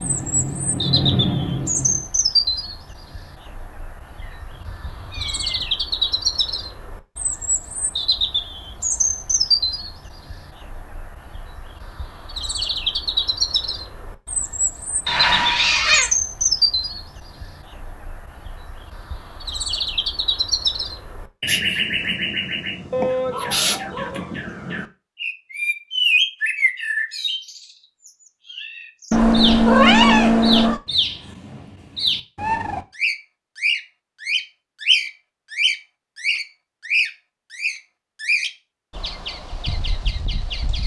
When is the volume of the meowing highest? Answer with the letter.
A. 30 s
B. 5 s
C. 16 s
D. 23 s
A.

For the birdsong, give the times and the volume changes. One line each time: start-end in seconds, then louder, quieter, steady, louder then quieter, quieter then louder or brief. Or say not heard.
0.0-40.8 steady.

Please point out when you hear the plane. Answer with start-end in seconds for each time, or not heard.
0.0-2.1.